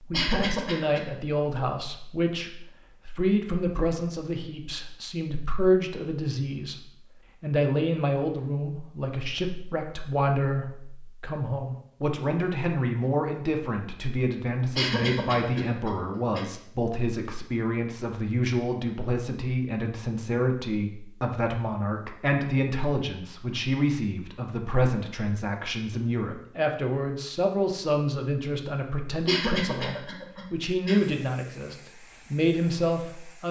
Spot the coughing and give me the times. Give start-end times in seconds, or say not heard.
0.1-1.1, 14.8-16.4, 29.2-31.1.